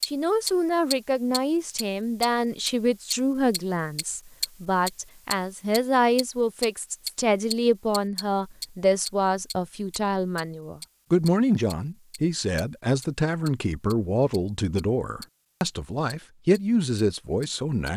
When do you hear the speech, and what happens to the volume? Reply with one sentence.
The speech can be heard from 0.1 to 17.9 s, at a steady volume.